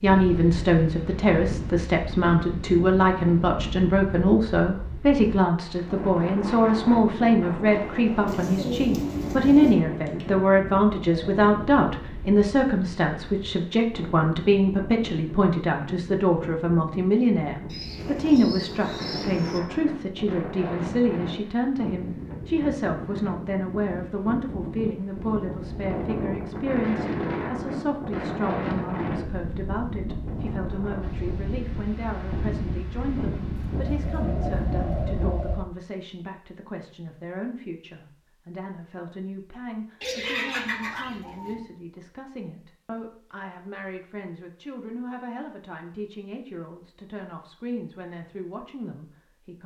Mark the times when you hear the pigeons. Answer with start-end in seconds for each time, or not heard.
8.2-9.8, 17.6-19.6, 33.7-35.5, 40.0-41.6.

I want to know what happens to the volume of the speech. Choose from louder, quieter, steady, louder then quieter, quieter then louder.
quieter.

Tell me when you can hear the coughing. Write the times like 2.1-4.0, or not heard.
not heard.